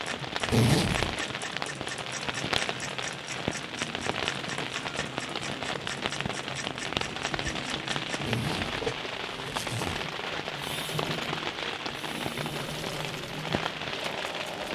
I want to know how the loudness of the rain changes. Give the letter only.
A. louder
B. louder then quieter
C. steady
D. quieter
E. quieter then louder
C.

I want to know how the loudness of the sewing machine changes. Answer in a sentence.
The loudness of the sewing machine stays about the same.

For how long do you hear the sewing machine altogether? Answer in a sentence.
You can hear the sewing machine for 15 seconds altogether.